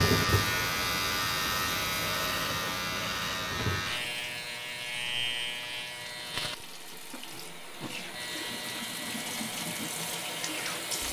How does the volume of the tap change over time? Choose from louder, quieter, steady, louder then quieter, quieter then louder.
quieter then louder.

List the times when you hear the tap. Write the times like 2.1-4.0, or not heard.
0.0-11.0.